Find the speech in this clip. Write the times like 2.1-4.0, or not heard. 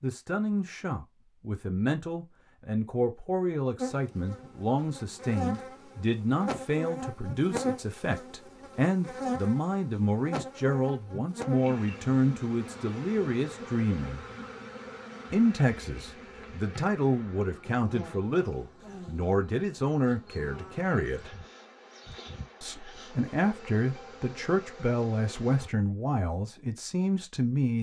0.0-14.2, 15.3-21.3, 22.6-27.7.